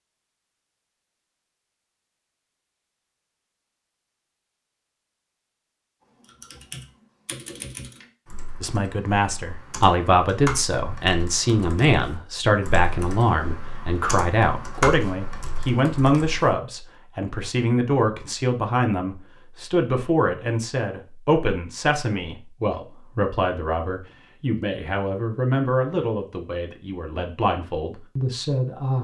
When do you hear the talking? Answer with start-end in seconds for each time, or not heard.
8.6-29.0.